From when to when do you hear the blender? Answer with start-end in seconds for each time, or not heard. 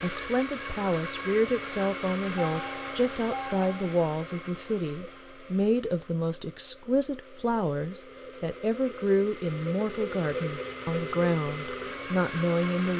0.0-12.9.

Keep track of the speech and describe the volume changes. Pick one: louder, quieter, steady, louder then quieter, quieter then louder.
steady.